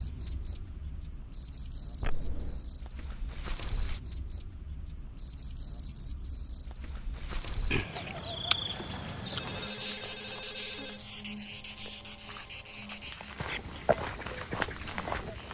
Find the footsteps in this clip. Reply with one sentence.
You can hear the footsteps from 11.8 to 15.5 s.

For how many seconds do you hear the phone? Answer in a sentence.
The phone can be heard for 3 seconds in total.